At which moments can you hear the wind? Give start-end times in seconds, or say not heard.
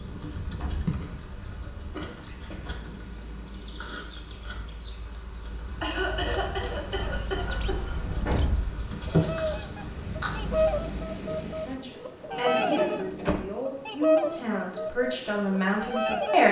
0.0-11.8.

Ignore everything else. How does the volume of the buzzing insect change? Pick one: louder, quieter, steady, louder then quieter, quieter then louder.
louder.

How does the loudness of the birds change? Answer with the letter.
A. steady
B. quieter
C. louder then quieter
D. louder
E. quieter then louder
C.